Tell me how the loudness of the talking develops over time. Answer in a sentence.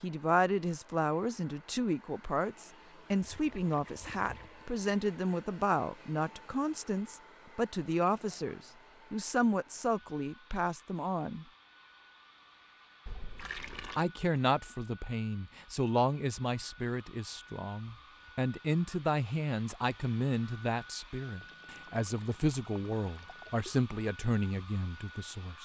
The volume of the talking stays about the same.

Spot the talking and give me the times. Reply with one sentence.
You can hear the talking from 0.0 to 11.4 s and from 13.9 to 25.6 s.